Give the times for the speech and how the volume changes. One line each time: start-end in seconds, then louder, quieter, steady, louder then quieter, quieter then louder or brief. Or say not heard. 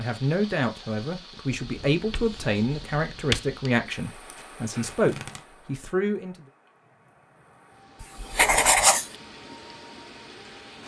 0.0-6.3 steady.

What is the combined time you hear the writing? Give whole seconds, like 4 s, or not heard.
3 s.